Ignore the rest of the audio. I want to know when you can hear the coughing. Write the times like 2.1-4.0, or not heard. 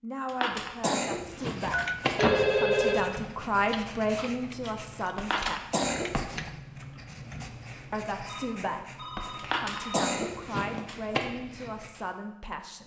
0.2-2.3, 5.2-6.4, 9.3-11.2.